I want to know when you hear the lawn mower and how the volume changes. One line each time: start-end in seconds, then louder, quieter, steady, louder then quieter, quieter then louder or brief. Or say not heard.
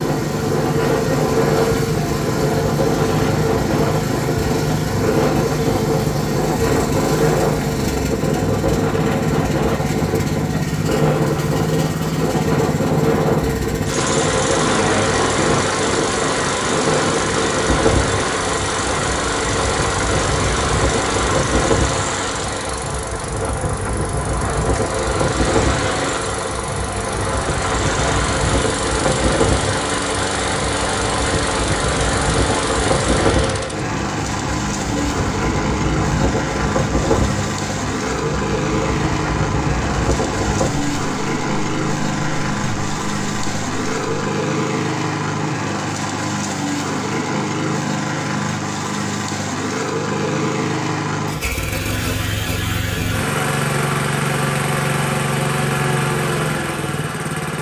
0.0-57.5 steady.